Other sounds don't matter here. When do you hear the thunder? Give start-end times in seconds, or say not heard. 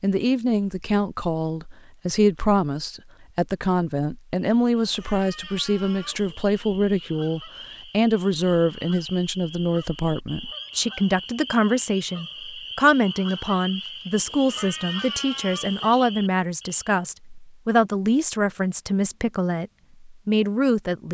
not heard.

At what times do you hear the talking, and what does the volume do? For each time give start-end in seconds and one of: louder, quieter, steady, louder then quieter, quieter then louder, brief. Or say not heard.
0.0-21.0 steady.